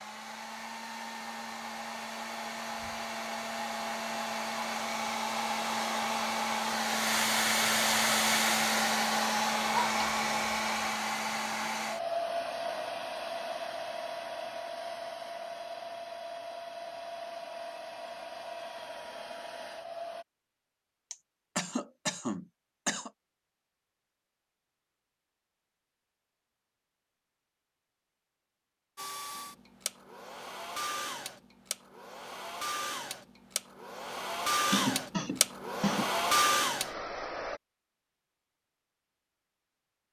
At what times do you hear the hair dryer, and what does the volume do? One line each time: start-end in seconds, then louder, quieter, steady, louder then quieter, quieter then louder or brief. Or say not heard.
0.0-20.2 louder then quieter
28.9-37.6 louder.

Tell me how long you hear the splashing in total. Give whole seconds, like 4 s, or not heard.
not heard.